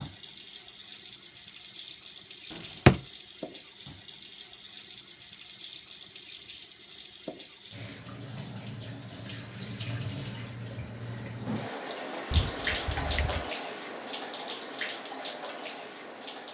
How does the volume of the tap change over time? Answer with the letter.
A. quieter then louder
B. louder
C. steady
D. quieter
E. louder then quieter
B.